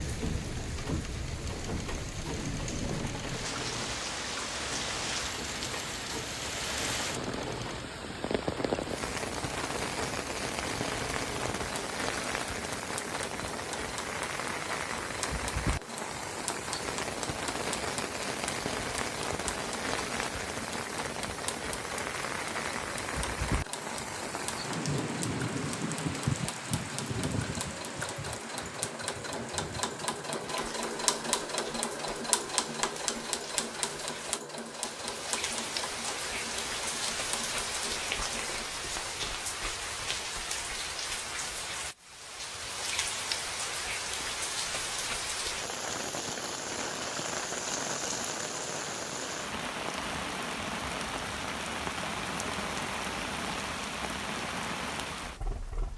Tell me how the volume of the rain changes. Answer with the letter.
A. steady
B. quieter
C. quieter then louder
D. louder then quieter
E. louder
A.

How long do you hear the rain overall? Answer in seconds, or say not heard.
56 s.